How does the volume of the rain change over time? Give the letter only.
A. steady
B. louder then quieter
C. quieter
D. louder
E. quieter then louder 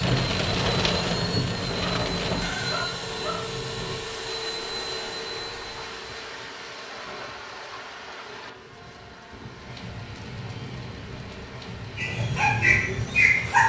C.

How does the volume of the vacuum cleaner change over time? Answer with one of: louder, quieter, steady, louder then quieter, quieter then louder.
quieter.